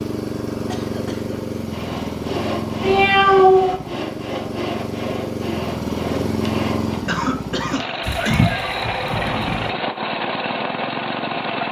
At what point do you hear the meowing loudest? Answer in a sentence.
The loudest moment of the meowing is at 3 seconds.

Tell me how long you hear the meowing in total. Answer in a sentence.
You can hear the meowing for 3 seconds altogether.